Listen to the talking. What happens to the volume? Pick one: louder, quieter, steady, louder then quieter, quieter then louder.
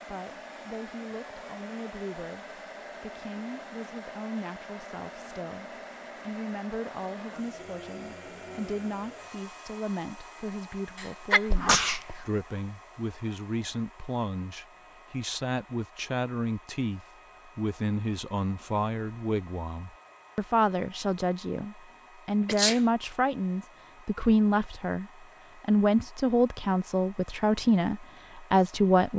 louder.